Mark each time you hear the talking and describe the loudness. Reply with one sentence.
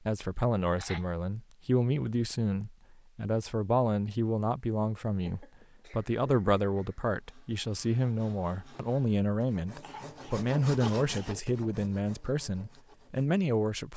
You can hear the talking from 0.1 to 13.9 s, at a steady volume.